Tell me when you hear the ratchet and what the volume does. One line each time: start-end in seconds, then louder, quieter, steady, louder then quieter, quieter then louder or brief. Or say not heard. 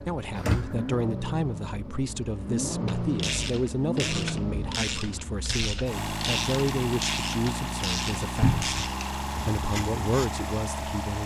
2.9-10.3 steady.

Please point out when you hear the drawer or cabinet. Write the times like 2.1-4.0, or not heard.
0.3-0.8, 8.4-8.8.